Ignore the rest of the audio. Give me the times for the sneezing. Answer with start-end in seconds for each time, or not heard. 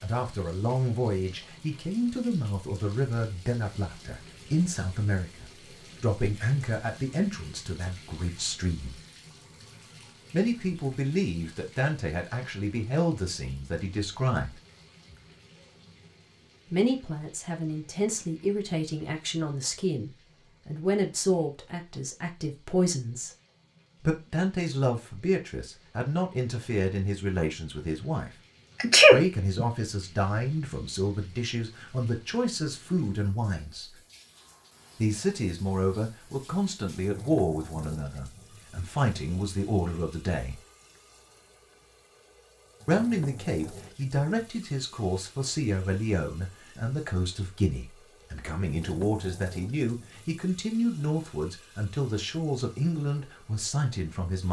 28.8-29.6.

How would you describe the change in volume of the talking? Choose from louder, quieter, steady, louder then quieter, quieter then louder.
steady.